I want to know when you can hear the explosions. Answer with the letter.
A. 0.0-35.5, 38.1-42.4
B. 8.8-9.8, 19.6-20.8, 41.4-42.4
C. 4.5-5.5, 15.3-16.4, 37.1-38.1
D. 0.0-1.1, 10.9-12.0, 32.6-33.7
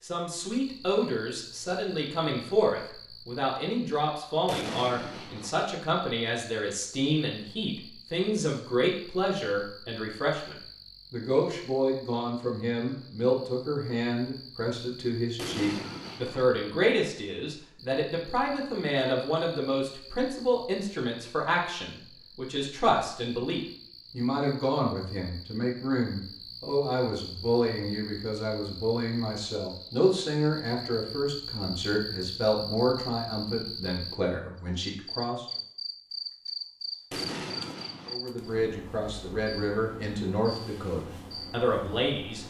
C.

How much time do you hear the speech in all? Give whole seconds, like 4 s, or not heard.
40 s.